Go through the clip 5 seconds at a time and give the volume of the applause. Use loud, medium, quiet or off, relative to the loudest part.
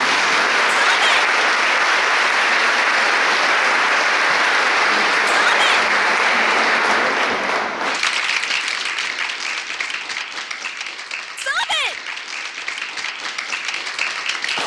loud, loud, medium.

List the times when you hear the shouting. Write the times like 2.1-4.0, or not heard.
0.8-1.2, 5.2-5.8, 11.3-11.9.